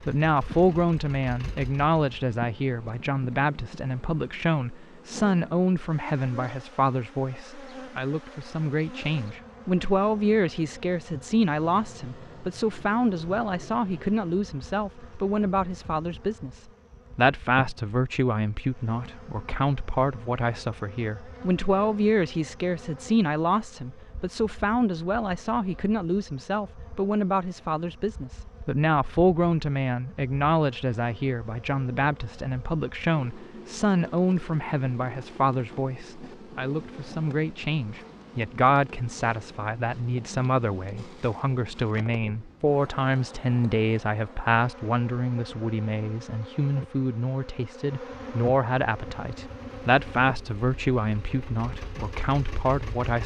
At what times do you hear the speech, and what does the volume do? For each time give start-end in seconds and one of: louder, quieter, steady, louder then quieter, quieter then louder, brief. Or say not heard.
0.0-53.2 steady.